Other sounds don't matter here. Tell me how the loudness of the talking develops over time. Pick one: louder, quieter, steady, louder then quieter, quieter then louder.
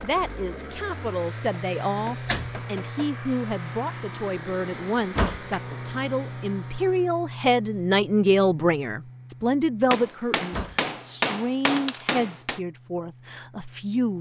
louder then quieter.